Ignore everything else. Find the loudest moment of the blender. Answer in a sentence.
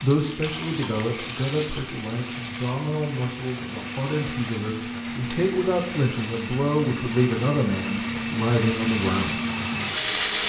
The volume of the blender peaks at 10 seconds.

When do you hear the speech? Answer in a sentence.
The speech can be heard from 0.0 to 9.4 s.